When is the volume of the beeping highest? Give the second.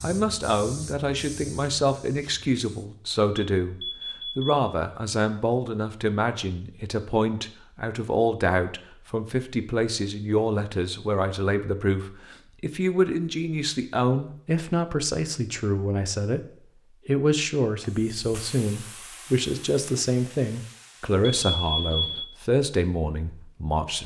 22 s.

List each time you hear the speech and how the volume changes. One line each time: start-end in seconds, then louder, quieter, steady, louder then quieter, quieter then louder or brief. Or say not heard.
0.0-24.0 steady.